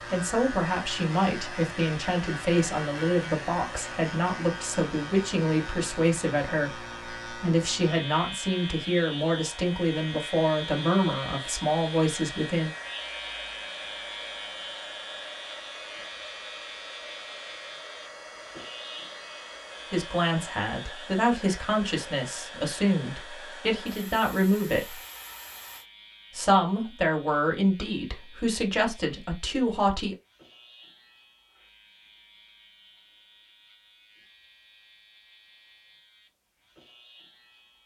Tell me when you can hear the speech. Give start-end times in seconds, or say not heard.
0.1-12.7, 19.9-24.9, 26.3-30.1.